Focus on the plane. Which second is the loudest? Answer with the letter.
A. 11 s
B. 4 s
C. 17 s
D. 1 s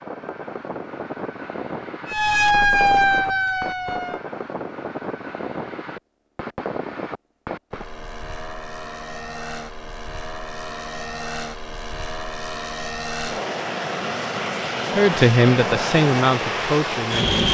C.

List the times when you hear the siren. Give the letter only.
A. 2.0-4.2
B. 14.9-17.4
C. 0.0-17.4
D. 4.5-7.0
A.